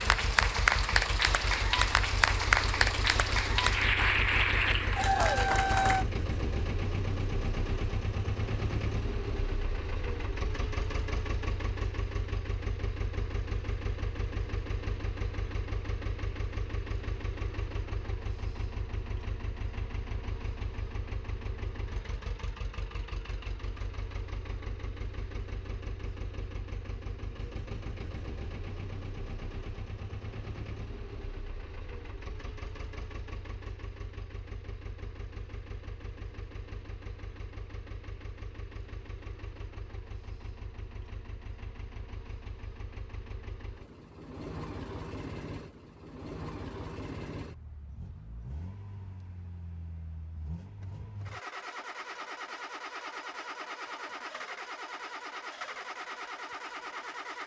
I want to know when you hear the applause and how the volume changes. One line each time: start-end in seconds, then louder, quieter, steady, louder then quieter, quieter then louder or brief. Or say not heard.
0.0-6.0 steady.